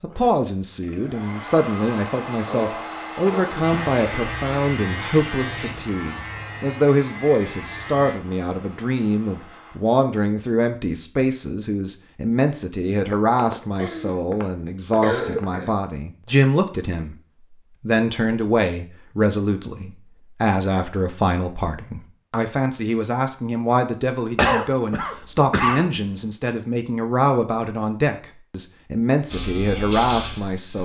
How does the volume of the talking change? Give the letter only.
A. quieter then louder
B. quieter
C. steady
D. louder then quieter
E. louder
C.